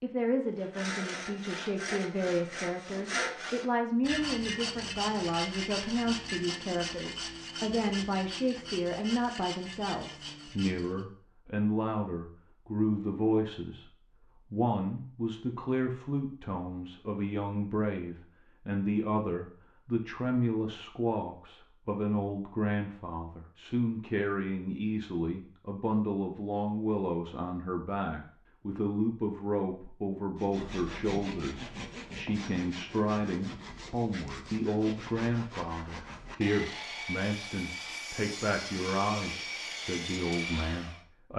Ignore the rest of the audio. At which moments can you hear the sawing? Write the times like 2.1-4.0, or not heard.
0.6-11.1, 30.4-41.0.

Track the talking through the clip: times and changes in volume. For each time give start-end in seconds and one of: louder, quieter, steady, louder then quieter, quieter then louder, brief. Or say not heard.
0.0-41.3 steady.